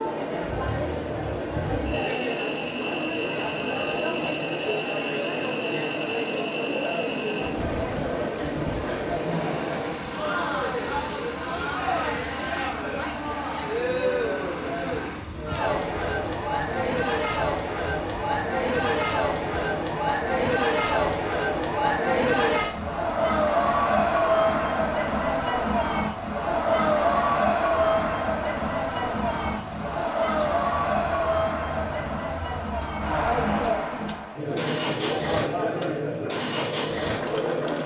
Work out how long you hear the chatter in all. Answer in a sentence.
You can hear the chatter for 38 seconds altogether.